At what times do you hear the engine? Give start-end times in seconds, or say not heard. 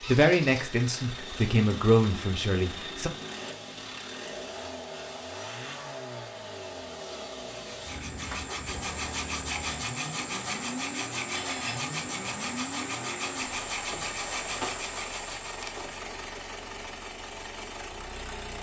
0.0-18.5.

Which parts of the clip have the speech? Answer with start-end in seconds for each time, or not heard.
0.1-3.1.